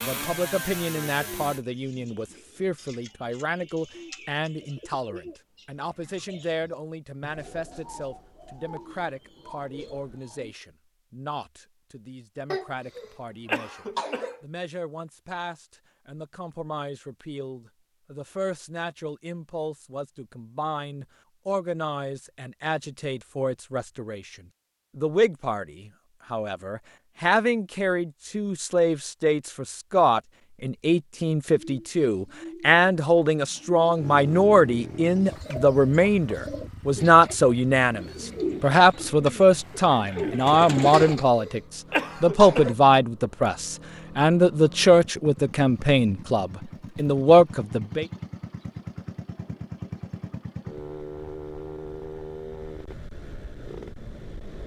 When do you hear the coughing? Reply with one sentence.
The coughing can be heard from 12.5 to 14.4 s and from 40.9 to 42.8 s.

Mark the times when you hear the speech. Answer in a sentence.
You can hear the speech from 0.0 to 48.0 s.